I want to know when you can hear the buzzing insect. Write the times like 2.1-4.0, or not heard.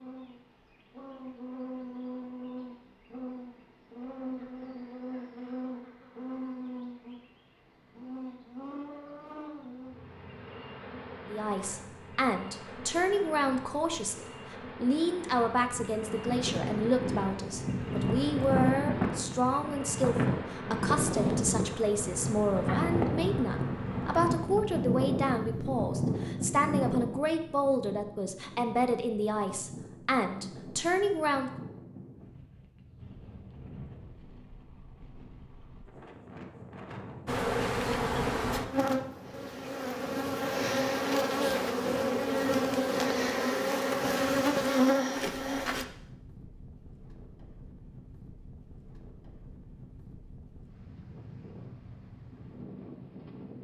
0.0-24.3, 37.2-45.9.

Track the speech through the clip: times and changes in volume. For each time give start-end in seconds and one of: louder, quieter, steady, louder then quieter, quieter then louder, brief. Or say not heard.
11.2-31.5 steady.